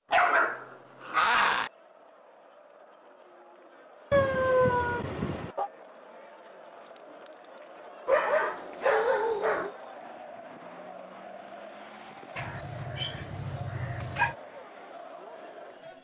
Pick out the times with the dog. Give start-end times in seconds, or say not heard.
0.1-1.7, 4.1-5.7, 8.1-9.7, 12.3-14.3.